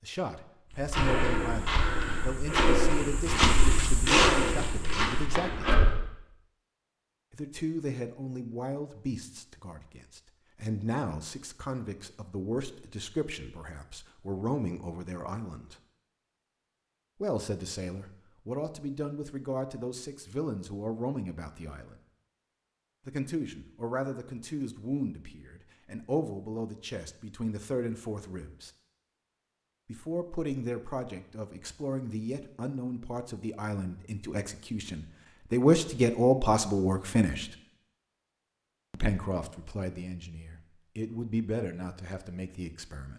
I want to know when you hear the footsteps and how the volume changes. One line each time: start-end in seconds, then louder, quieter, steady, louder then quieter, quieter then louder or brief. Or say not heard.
0.8-6.0 louder then quieter.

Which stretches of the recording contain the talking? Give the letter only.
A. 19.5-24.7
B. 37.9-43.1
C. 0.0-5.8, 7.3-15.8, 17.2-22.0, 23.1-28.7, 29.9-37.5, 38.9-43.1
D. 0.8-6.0
C.